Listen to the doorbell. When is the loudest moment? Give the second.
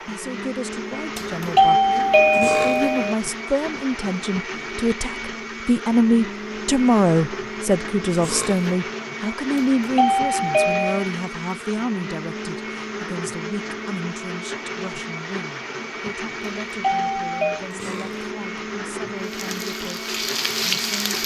2 s.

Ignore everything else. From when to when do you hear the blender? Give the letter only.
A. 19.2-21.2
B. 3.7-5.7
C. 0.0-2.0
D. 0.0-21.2
D.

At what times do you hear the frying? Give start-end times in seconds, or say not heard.
19.2-21.2.